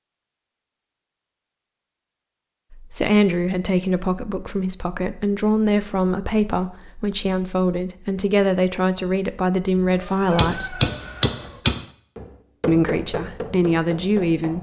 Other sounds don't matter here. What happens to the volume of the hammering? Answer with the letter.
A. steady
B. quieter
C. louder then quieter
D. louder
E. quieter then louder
B.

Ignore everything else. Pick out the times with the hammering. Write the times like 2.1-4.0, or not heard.
10.2-14.5.